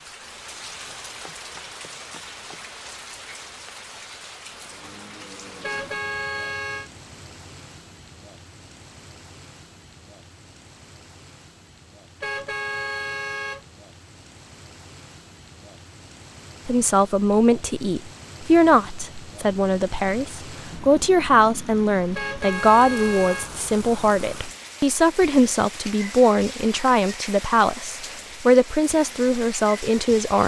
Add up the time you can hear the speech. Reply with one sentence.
The speech can be heard for 14 seconds in total.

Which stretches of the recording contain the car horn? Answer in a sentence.
You can hear the car horn from 5.6 to 6.9 s, from 12.2 to 13.7 s and from 22.1 to 23.5 s.